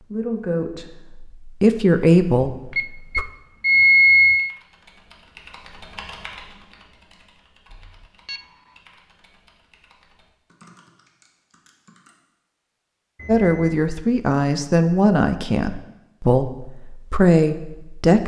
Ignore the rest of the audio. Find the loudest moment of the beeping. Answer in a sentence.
The volume of the beeping peaks at 4 seconds.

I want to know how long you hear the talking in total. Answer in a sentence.
You can hear the talking for 8 seconds altogether.